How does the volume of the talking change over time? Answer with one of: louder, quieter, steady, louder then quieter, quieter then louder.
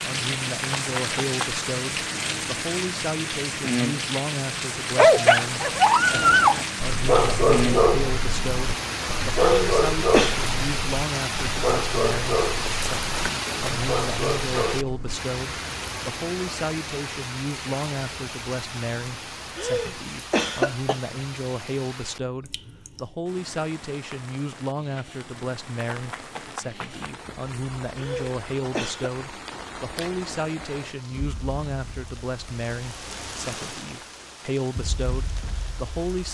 steady.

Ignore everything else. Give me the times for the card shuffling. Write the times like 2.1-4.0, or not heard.
0.6-1.5, 12.7-13.8, 25.8-27.2.